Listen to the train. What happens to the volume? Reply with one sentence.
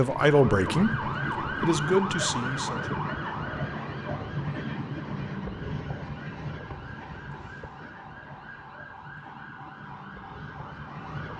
The loudness of the train goes down.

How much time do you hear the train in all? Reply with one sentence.
The train can be heard for 11 seconds in total.